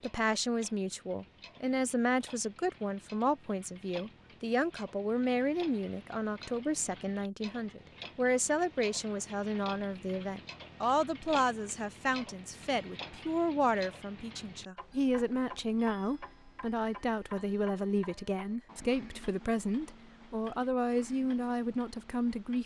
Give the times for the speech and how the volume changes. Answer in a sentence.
The speech can be heard from 0.0 to 22.6 s, at a steady volume.